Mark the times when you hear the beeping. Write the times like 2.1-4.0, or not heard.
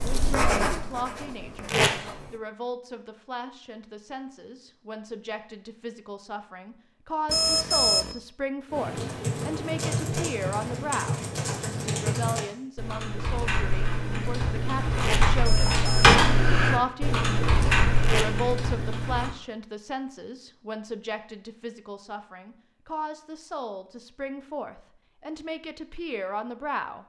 7.2-8.2, 15.4-16.2.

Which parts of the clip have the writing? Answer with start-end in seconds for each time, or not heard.
0.0-2.4.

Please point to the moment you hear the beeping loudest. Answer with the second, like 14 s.
8 s.